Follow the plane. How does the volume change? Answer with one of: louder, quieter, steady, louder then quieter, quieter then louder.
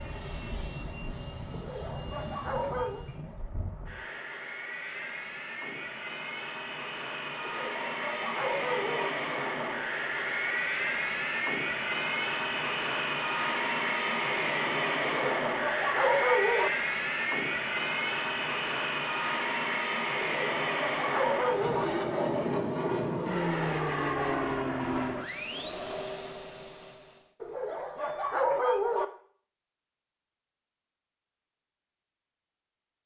louder.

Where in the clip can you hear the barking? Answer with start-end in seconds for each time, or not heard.
1.5-3.0, 7.4-9.1, 15.1-16.7, 20.2-21.9, 27.4-29.1.